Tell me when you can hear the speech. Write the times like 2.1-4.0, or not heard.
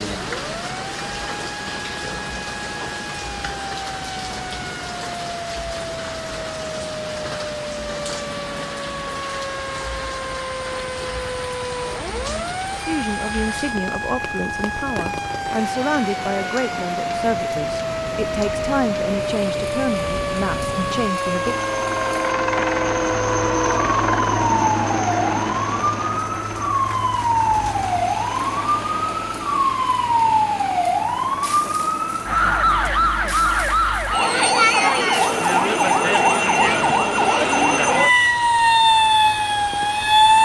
12.8-21.6.